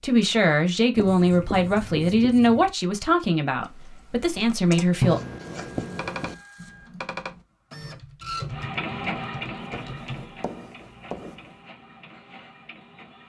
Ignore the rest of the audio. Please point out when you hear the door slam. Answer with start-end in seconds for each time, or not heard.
not heard.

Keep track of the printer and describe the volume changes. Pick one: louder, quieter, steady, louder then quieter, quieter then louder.
louder then quieter.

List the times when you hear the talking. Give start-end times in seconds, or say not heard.
0.0-5.2.